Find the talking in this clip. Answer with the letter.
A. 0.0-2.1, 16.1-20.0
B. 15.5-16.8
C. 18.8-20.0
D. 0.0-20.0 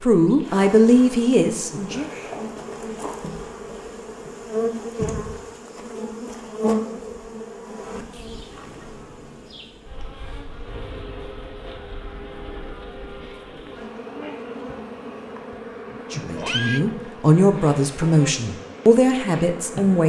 A.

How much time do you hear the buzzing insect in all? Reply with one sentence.
You can hear the buzzing insect for 20 seconds altogether.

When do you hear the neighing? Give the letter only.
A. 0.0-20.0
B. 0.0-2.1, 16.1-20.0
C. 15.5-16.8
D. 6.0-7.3
C.